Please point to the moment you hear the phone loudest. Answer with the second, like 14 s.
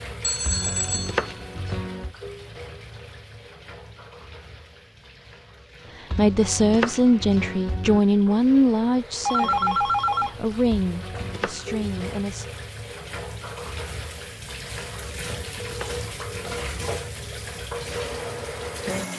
10 s.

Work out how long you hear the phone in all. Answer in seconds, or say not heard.
3 s.